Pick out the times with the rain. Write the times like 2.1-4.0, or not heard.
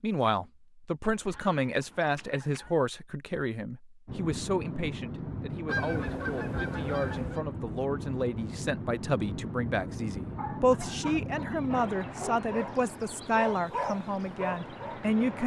4.0-15.4.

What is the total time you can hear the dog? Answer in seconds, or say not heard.
5 s.